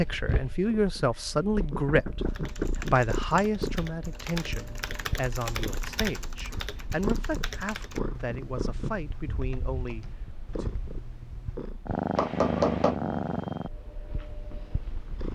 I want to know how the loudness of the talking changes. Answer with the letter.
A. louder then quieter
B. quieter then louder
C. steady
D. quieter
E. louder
D.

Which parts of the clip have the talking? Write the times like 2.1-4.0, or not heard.
0.0-10.7.